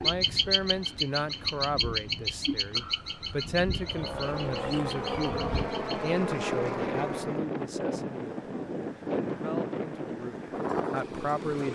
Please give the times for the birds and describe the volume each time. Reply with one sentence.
The birds can be heard from 0.0 to 6.2 s, getting quieter.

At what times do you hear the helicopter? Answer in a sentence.
You can hear the helicopter from 3.8 to 7.5 s.